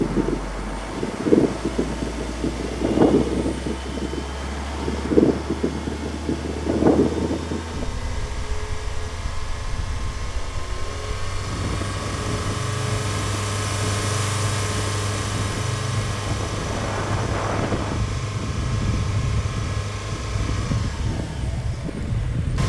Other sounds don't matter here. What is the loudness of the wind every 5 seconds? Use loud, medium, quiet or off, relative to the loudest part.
loud, loud, medium, medium, medium.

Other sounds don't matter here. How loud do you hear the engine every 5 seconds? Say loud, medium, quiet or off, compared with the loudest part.
medium, medium, loud, loud, medium.